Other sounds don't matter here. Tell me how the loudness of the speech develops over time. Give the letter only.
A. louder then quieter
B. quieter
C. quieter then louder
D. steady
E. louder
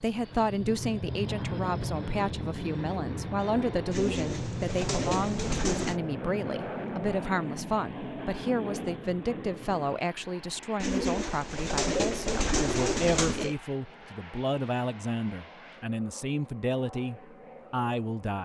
D.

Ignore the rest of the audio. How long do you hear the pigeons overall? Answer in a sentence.
You can hear the pigeons for 5 seconds altogether.